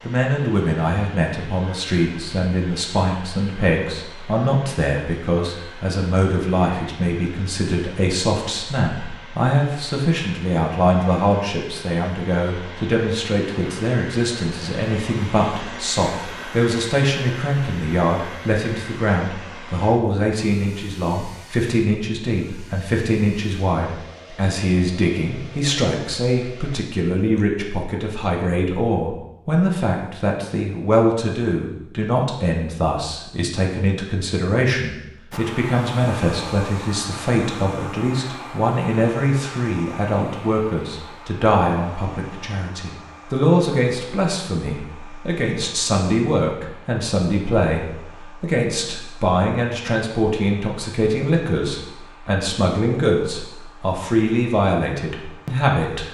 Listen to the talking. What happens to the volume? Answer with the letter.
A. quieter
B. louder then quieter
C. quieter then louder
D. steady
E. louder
D.